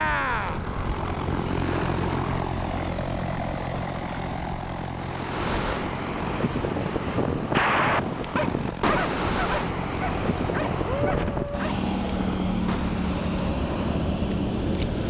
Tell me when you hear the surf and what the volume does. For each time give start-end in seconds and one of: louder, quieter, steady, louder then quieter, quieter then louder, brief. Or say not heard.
5.0-15.0 quieter.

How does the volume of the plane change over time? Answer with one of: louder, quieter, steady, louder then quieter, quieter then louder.
quieter then louder.